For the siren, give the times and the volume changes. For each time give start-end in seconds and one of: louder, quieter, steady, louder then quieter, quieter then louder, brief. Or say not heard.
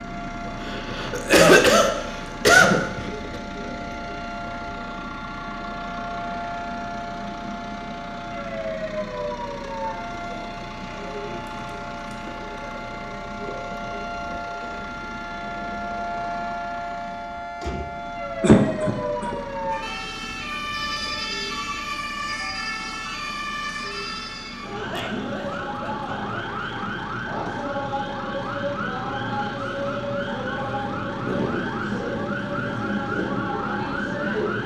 0.0-34.6 louder.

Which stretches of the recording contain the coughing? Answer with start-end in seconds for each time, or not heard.
0.6-3.4, 18.4-19.4, 24.8-26.5.